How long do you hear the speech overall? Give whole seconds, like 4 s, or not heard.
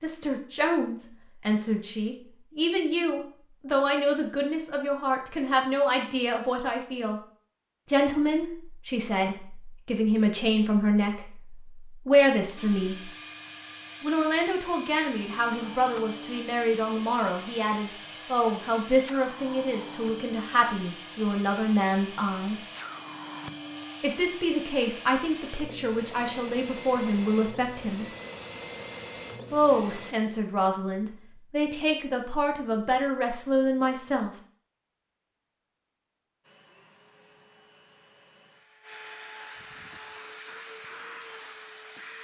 30 s.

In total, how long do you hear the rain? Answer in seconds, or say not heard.
not heard.